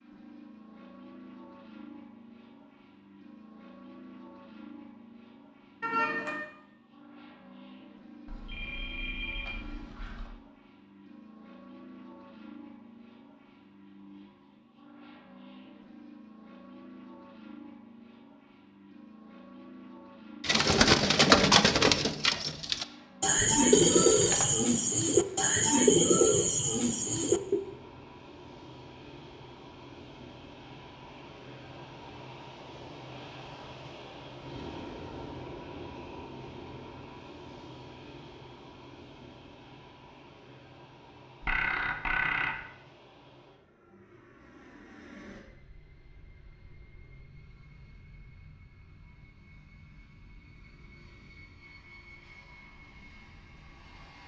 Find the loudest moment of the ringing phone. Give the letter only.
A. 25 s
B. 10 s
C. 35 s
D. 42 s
D.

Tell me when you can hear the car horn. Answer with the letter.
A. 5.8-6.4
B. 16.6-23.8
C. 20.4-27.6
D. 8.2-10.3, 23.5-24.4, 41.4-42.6
A.